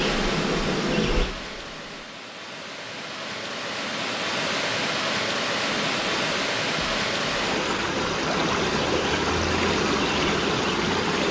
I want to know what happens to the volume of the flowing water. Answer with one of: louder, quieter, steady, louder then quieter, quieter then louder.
louder.